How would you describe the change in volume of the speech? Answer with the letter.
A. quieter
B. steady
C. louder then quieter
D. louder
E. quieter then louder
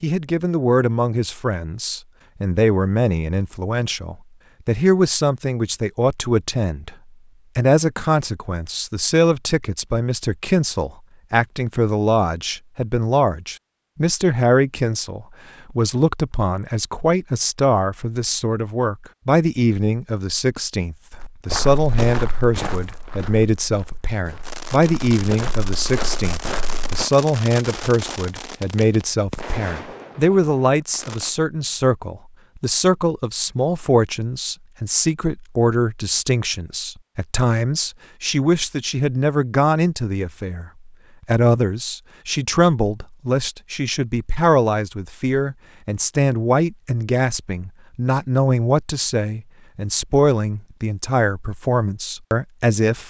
B.